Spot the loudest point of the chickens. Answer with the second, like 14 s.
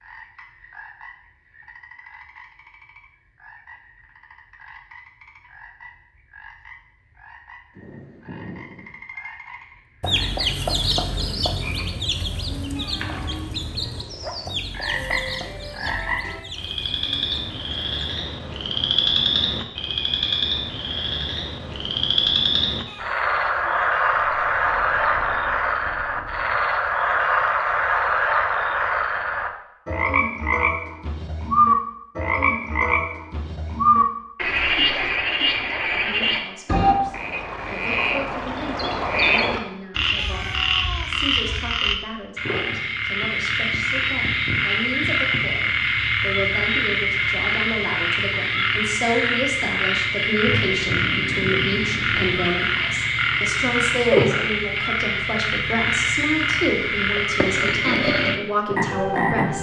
11 s.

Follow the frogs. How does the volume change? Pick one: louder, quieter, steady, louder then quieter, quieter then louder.
louder.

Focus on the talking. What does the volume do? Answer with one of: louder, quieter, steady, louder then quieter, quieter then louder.
louder.